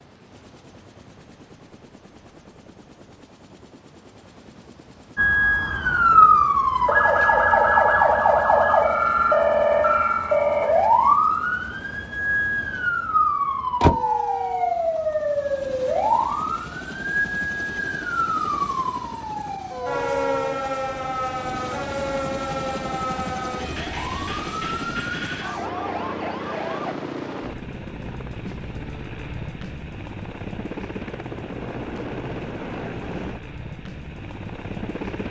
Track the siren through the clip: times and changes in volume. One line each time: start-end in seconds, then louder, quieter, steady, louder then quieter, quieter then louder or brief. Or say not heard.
5.2-26.9 quieter.